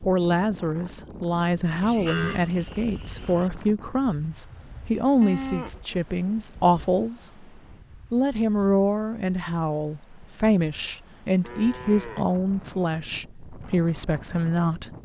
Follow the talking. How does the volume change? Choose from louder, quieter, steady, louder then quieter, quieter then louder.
steady.